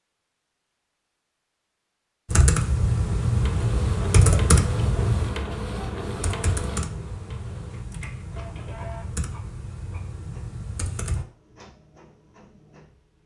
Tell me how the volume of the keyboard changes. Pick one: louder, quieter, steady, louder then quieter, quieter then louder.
quieter.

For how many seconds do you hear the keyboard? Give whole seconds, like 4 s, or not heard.
9 s.